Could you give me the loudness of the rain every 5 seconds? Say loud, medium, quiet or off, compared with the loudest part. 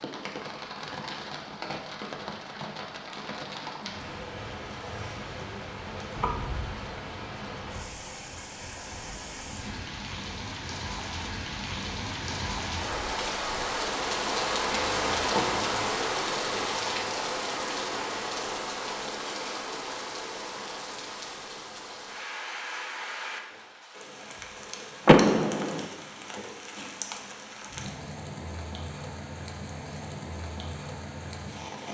medium, medium, loud, loud, medium, medium, medium.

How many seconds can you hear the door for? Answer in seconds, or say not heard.
2 s.